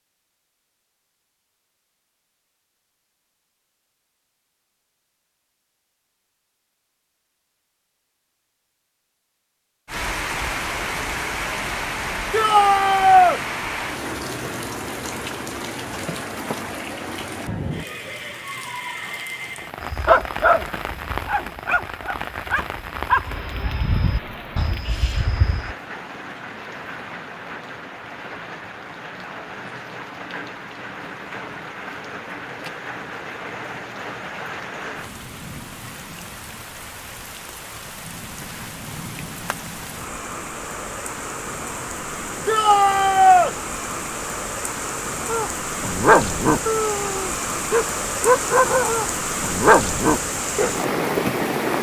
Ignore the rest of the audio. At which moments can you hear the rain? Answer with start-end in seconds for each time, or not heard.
9.8-51.7.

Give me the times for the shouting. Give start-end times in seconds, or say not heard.
12.3-13.4, 42.5-43.5.